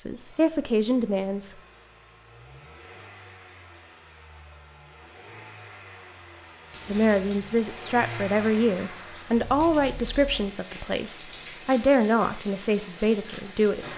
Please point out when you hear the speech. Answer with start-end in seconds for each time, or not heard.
0.0-1.6, 6.8-13.9.